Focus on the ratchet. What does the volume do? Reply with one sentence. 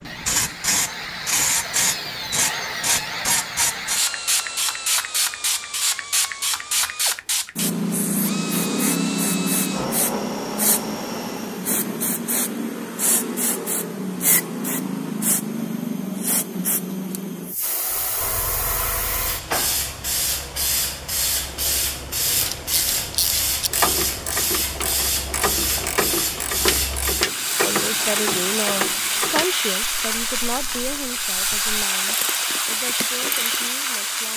The loudness of the ratchet goes down.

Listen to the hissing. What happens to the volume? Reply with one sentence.
The volume of the hissing stays about the same.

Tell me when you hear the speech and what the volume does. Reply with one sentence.
You can hear the speech from 27.6 to 34.3 s, getting quieter.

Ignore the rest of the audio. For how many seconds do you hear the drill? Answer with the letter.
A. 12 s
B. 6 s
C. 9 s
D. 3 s
A.